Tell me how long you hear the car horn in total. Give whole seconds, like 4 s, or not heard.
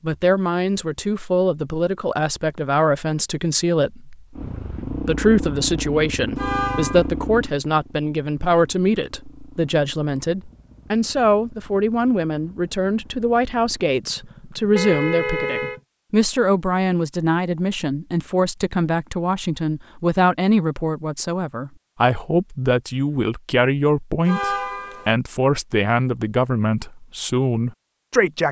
3 s.